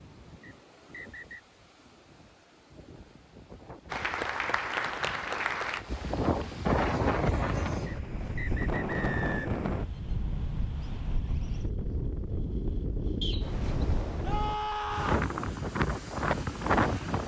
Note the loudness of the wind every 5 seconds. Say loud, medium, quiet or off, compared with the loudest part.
quiet, loud, medium, loud.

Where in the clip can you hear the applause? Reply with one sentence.
You can hear the applause from 3.9 to 6.2 s.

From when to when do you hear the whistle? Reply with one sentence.
The whistle can be heard from 0.4 to 1.4 s, from 7.8 to 9.7 s and from 13.2 to 13.7 s.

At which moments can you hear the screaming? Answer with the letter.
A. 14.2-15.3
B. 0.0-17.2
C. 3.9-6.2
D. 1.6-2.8
A.